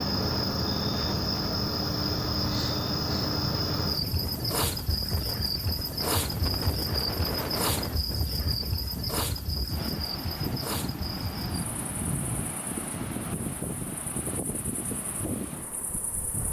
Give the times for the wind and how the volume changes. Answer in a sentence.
You can hear the wind from 0.0 to 16.4 s, at a steady volume.